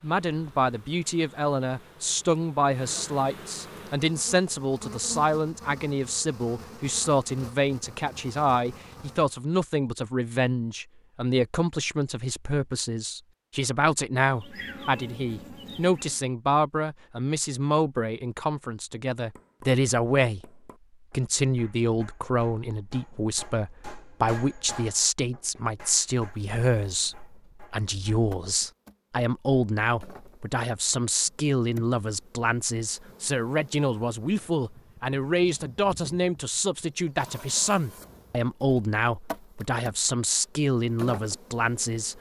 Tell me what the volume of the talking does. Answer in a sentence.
The volume of the talking stays about the same.